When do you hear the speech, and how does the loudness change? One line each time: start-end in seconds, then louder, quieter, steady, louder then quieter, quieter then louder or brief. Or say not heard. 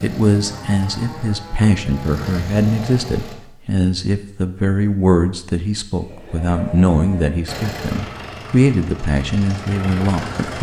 0.0-10.5 steady.